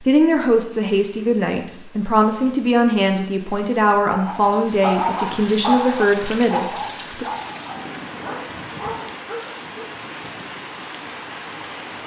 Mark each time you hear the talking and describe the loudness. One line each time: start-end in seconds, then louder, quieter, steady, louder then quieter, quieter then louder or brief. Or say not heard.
0.0-7.2 steady.